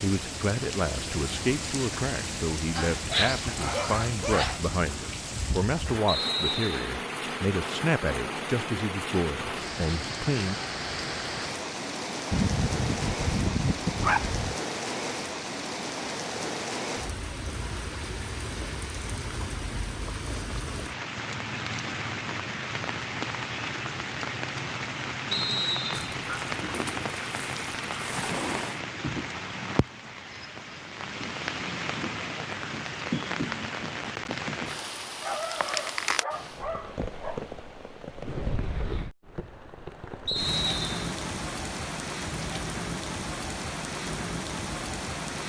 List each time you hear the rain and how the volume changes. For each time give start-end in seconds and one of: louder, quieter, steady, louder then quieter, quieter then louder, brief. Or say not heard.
0.0-45.4 steady.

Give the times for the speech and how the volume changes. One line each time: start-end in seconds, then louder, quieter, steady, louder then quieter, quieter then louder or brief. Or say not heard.
0.0-10.6 steady.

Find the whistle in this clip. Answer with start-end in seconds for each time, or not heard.
6.0-6.9, 25.3-26.1, 40.2-41.1.